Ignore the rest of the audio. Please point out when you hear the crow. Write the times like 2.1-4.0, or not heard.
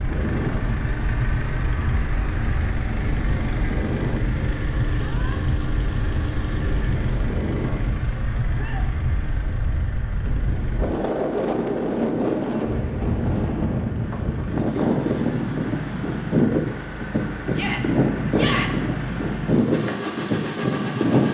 not heard.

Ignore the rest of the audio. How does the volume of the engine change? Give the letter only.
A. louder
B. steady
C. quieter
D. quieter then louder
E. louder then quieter
D.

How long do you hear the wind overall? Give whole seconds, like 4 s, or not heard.
21 s.